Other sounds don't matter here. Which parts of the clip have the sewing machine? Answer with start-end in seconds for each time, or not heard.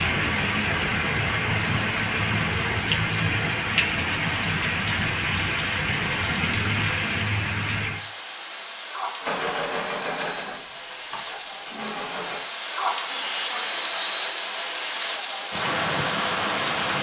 9.2-12.4.